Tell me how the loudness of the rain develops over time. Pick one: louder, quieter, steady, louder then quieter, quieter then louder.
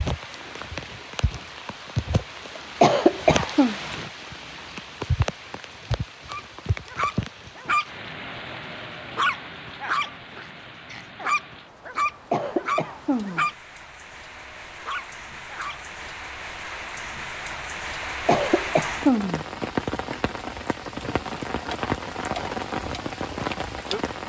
quieter then louder.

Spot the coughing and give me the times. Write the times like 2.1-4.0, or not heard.
2.5-3.8, 12.1-13.4, 18.0-19.4.